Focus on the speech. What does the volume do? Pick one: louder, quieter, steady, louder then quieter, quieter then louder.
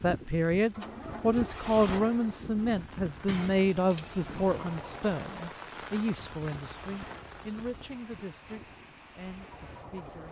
quieter.